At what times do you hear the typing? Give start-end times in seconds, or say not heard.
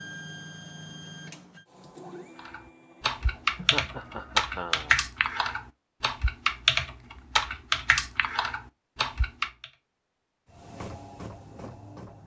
2.4-9.8.